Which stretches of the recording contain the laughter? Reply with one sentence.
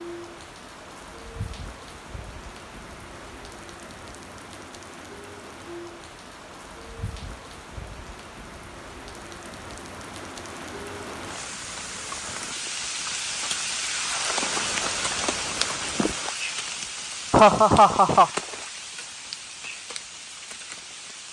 The laughter can be heard from 17.3 to 18.3 s.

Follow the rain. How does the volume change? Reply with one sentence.
The volume of the rain goes up, then down.